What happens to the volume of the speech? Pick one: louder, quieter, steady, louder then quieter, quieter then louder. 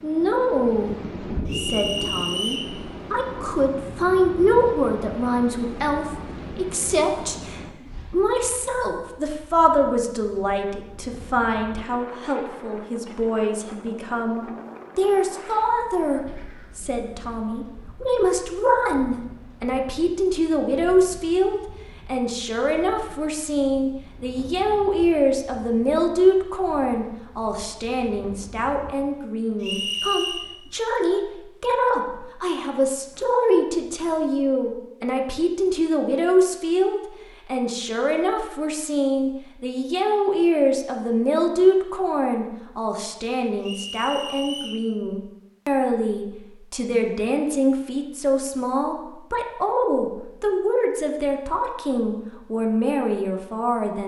steady.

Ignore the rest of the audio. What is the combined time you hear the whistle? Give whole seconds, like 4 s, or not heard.
3 s.